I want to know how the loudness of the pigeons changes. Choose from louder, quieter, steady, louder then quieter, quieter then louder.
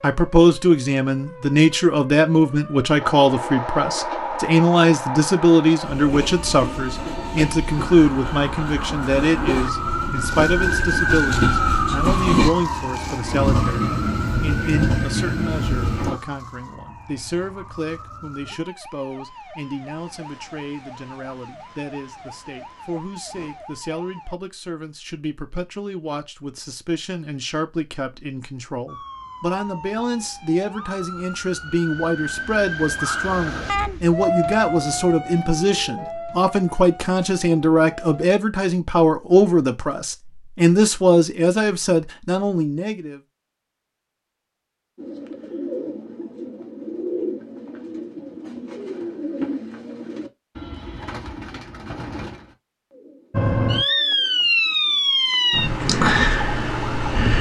quieter.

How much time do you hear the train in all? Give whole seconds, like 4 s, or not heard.
13 s.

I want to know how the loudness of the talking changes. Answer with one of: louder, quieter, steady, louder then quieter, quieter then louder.
quieter then louder.